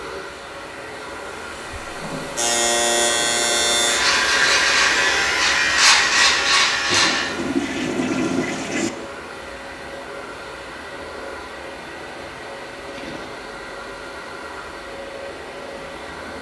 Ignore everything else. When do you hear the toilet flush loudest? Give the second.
8 s.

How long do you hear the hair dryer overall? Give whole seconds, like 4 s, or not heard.
16 s.